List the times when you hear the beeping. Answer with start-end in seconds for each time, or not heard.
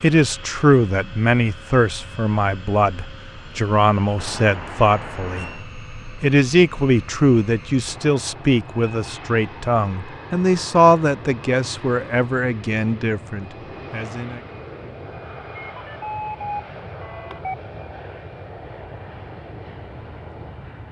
4.2-5.7, 15.6-17.6.